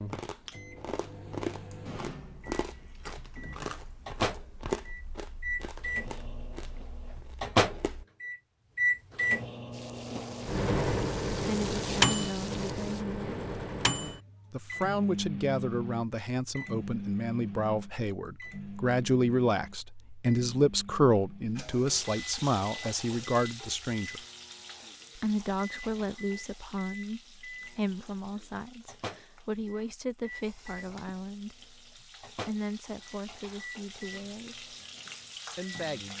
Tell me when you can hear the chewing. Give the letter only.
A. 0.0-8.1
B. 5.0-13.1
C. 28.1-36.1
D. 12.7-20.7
A.